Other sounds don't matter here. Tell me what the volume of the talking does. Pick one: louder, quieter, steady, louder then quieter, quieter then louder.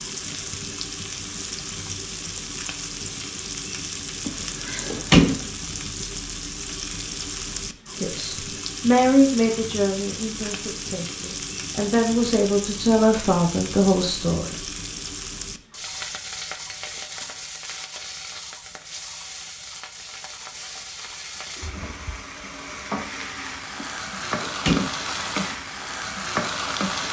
quieter then louder.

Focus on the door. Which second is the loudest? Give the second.
5 s.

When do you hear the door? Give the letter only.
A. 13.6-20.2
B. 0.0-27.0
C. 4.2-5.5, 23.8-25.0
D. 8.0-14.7
C.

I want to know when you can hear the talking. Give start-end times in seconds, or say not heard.
8.0-14.7.